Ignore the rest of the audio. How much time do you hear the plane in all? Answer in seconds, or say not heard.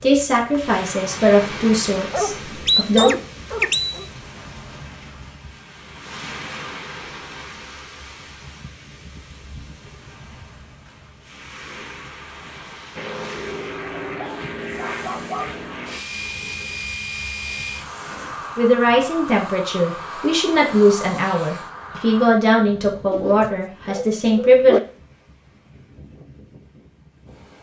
9 s.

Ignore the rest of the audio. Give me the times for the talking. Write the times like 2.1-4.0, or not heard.
0.0-3.1, 18.6-24.8.